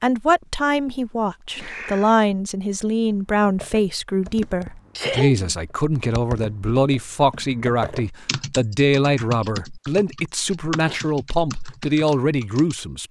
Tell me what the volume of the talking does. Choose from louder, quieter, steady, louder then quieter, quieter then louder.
steady.